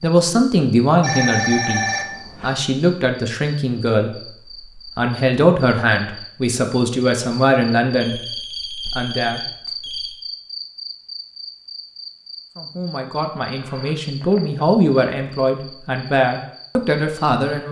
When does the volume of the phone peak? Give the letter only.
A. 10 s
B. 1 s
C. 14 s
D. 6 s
B.